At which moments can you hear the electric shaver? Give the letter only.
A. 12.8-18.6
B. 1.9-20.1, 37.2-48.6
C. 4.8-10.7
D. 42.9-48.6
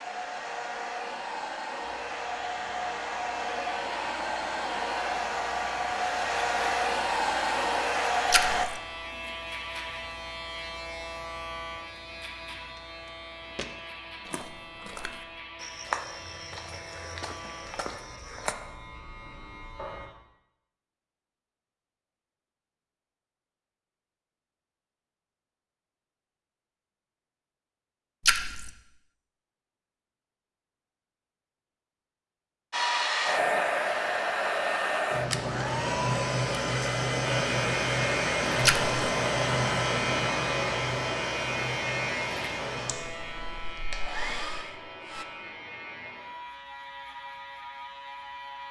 B.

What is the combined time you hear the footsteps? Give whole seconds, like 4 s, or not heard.
6 s.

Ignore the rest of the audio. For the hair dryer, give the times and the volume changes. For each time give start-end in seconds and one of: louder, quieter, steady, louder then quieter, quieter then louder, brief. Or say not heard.
0.0-8.7 louder
32.7-45.2 quieter.